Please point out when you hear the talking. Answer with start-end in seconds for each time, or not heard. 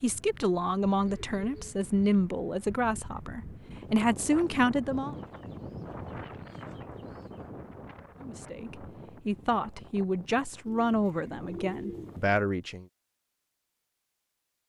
0.0-5.2, 8.2-12.8.